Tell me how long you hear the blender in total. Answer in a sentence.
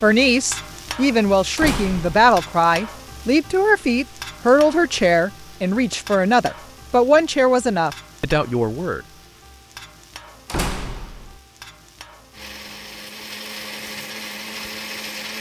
The blender can be heard for 3 seconds in total.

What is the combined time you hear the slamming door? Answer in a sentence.
The slamming door can be heard for 2 seconds in total.